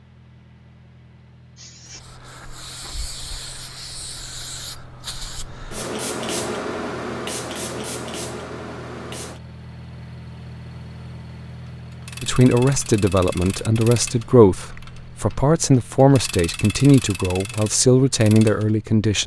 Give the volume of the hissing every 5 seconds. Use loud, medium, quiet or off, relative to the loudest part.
medium, loud, off, off.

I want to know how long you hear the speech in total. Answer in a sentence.
You can hear the speech for 7 seconds altogether.